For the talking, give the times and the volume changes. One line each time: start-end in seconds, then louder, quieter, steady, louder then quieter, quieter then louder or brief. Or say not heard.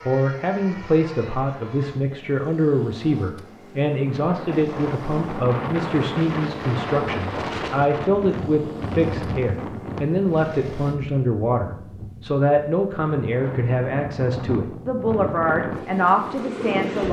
0.1-17.0 steady.